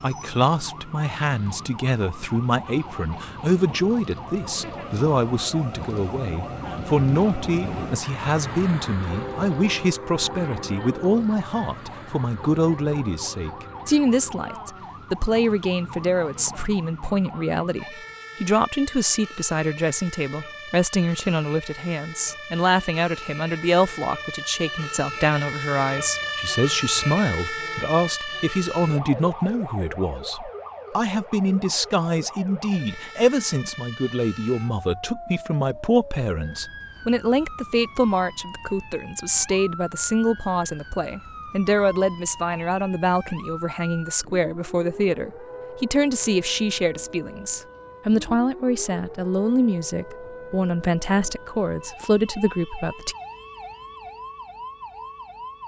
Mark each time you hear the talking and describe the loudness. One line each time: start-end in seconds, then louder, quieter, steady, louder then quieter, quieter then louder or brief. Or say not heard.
0.0-53.1 steady.